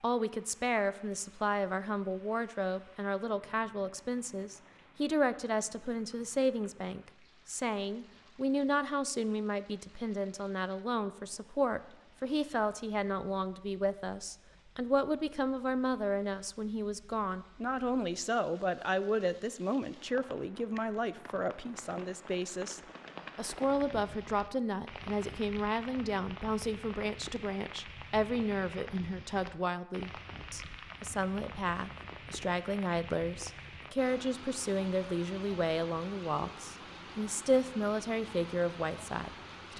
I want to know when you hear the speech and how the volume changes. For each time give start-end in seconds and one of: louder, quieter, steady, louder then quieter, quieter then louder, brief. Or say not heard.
0.0-39.7 steady.